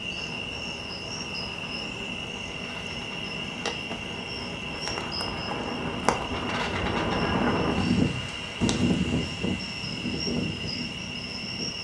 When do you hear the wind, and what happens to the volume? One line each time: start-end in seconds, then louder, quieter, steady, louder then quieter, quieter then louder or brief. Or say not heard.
0.0-11.8 louder then quieter.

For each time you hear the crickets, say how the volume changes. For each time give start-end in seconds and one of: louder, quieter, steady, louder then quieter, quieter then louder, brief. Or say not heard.
0.0-11.8 steady.